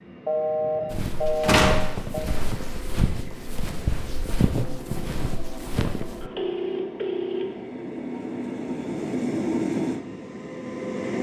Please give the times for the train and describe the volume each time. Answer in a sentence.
The train can be heard from 0.0 to 11.1 s, getting louder.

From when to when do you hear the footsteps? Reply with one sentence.
You can hear the footsteps from 0.9 to 6.3 s.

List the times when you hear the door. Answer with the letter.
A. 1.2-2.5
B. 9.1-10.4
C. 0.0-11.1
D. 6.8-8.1
A.